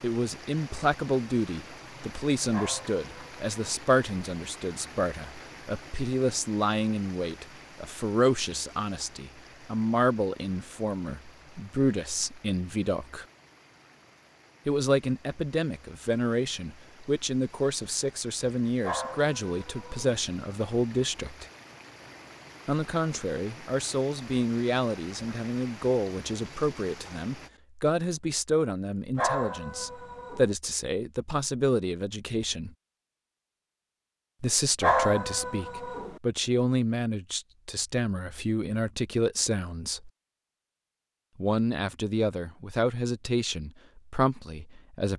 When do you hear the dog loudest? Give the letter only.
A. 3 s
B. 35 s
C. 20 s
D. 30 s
B.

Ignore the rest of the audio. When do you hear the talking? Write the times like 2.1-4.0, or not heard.
0.0-13.2, 14.7-21.4, 22.6-32.8, 34.4-40.1, 41.4-45.1.